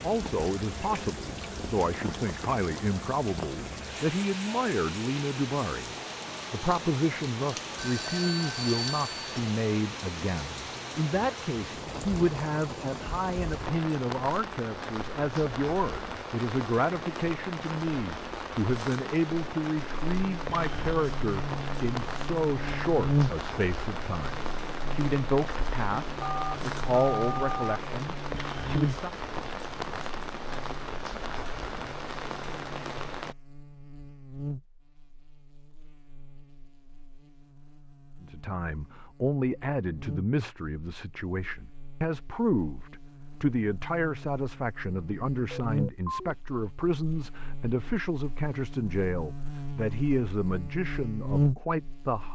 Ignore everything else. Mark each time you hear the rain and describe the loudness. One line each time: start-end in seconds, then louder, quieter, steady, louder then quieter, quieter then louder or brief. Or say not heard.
0.0-33.4 steady.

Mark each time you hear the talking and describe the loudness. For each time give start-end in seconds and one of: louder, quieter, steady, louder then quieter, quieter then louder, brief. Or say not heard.
0.0-29.1 steady
38.2-52.3 steady.